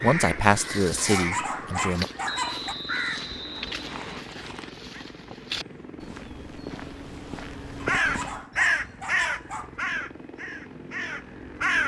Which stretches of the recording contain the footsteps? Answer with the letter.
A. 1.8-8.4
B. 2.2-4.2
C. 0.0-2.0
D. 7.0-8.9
A.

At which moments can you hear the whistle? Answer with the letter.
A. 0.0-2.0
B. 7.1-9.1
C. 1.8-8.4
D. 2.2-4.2
D.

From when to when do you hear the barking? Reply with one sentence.
The barking can be heard from 0.9 to 2.8 s and from 7.8 to 9.7 s.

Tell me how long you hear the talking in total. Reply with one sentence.
You can hear the talking for 2 seconds altogether.